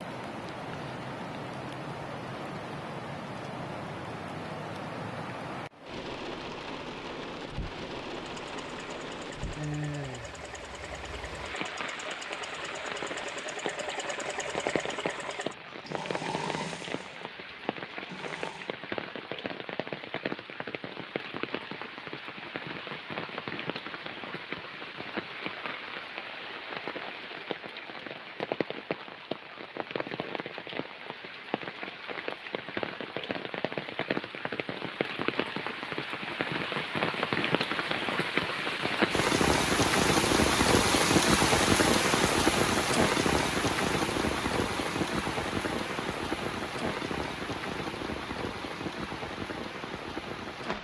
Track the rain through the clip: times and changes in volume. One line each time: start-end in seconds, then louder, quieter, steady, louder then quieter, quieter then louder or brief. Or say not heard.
0.0-50.7 louder.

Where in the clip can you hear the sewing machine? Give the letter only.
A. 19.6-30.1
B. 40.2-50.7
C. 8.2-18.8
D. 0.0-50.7
C.